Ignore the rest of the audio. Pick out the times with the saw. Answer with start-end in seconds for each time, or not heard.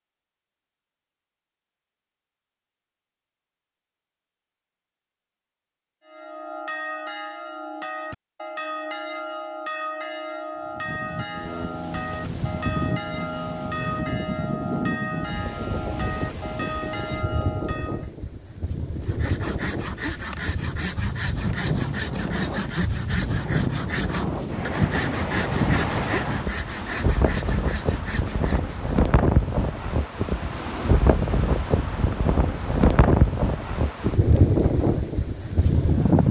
19.0-28.8.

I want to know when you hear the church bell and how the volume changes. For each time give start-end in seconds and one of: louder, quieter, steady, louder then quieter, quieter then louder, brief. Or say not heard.
6.0-18.1 steady.